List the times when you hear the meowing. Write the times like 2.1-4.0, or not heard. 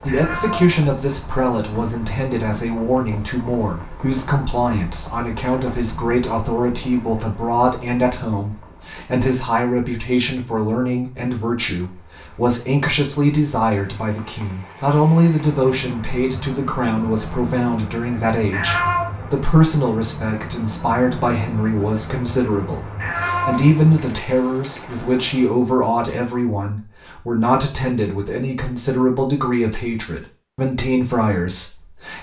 0.1-0.8, 18.5-19.1, 23.0-24.2.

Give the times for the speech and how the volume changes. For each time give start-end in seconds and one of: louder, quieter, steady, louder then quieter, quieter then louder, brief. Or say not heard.
0.0-32.1 steady.